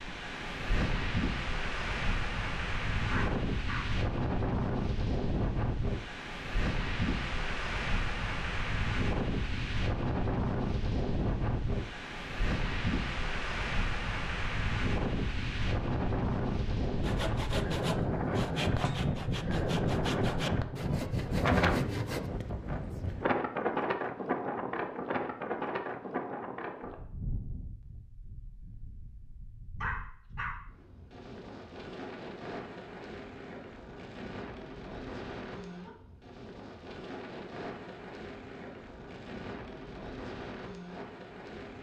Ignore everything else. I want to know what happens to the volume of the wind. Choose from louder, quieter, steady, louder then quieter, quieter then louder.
quieter.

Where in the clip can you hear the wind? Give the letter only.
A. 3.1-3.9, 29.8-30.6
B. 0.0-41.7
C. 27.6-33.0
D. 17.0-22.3
B.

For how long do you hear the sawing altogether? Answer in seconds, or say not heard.
5 s.